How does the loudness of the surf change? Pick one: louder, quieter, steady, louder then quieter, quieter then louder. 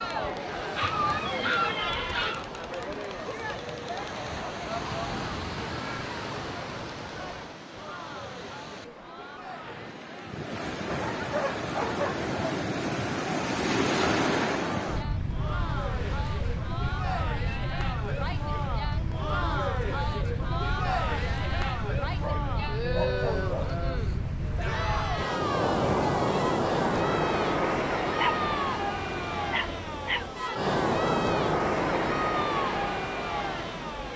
louder.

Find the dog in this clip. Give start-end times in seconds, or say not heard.
0.8-2.5, 10.9-12.3, 22.2-23.8, 28.1-30.3.